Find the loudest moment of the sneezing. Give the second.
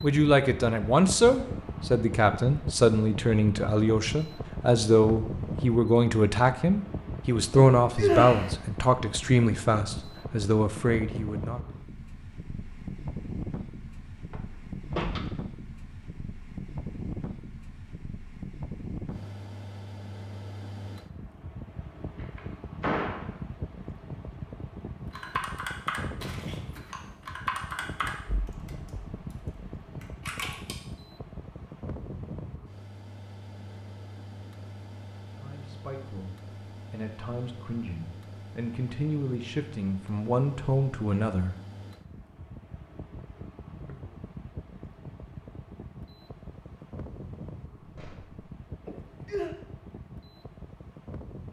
8 s.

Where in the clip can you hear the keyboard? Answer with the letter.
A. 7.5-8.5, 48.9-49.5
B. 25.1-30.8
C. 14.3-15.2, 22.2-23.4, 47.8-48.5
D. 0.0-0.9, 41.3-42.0
B.